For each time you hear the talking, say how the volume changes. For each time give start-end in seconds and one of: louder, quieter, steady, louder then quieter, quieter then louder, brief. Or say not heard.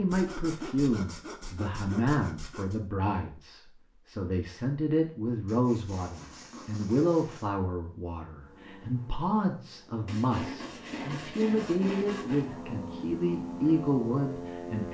0.0-14.8 steady.